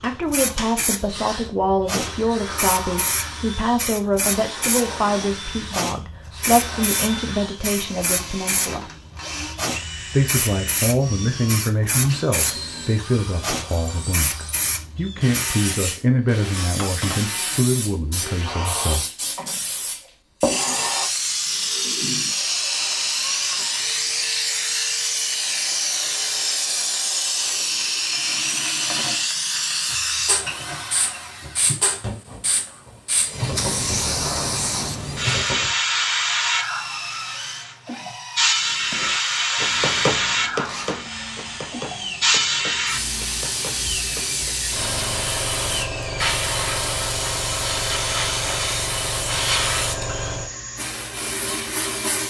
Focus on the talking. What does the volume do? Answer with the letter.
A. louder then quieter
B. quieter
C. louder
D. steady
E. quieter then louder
D.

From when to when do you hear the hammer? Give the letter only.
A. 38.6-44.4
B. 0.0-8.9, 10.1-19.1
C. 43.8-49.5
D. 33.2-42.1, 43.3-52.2
A.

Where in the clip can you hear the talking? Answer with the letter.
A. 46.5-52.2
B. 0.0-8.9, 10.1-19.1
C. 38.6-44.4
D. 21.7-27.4
B.